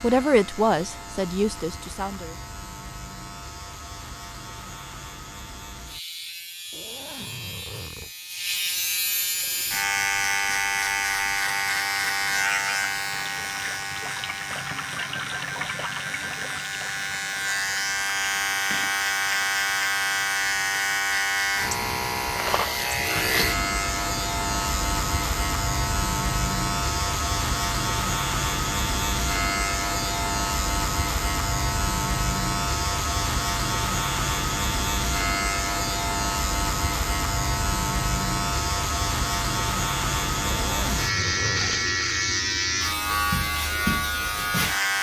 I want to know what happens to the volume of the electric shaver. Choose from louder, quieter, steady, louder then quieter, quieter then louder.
louder.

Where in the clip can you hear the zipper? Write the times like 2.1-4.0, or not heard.
6.7-8.1, 40.4-42.0.